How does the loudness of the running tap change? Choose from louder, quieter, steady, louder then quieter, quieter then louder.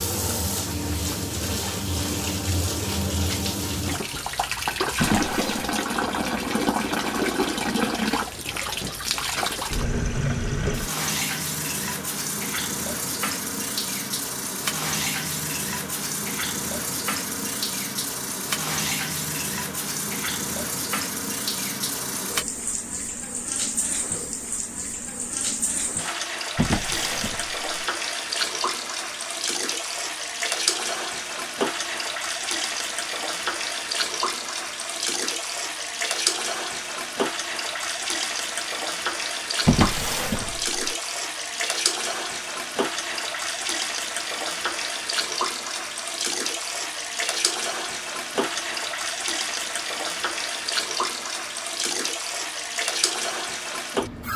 steady.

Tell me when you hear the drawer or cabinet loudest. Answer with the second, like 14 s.
40 s.